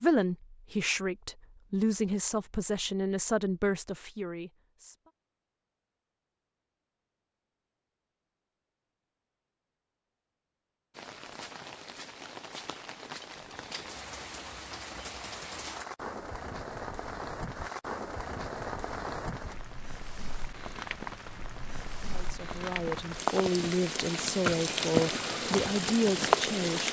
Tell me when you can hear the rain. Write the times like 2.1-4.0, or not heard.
10.9-26.8.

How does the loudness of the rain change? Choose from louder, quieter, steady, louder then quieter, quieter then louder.
louder.